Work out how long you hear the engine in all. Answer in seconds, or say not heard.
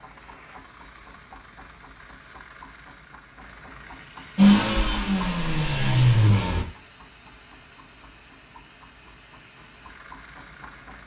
2 s.